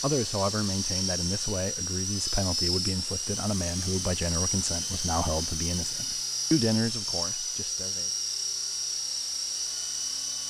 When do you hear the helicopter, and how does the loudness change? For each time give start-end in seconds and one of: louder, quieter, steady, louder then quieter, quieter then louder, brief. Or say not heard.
0.0-10.4 steady.